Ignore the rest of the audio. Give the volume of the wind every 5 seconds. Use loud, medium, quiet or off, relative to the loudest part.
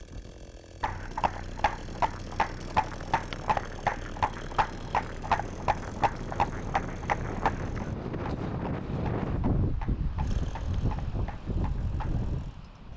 quiet, loud, loud.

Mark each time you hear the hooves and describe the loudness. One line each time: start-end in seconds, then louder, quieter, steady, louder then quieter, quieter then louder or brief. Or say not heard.
0.8-12.2 quieter.